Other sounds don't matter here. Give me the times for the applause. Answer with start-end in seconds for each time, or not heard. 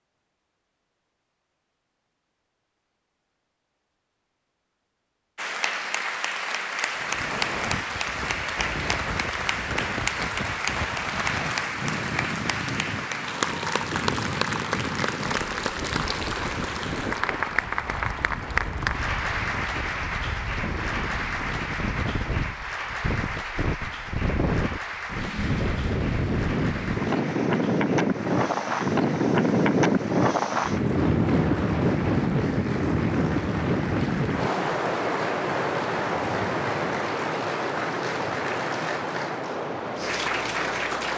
5.3-41.1.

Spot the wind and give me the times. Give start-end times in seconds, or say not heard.
6.9-41.1.